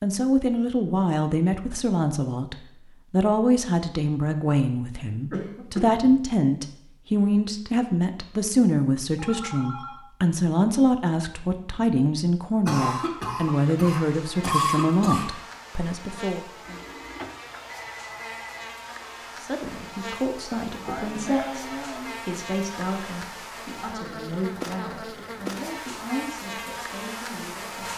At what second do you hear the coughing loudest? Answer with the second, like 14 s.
15 s.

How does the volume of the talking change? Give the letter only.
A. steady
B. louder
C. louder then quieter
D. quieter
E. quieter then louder
D.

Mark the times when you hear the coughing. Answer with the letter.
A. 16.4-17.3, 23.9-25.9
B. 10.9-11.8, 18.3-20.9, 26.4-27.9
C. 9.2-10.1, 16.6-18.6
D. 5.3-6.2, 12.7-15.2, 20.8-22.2
D.